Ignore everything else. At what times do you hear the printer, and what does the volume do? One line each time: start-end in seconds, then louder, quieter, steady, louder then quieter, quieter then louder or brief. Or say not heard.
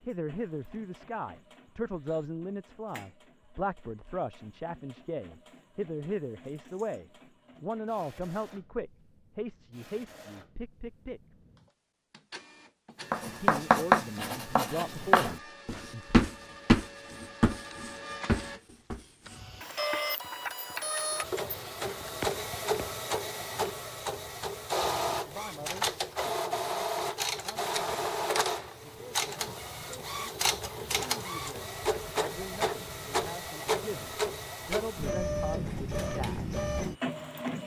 0.0-37.6 louder.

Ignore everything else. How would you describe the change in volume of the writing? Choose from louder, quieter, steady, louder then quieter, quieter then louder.
quieter.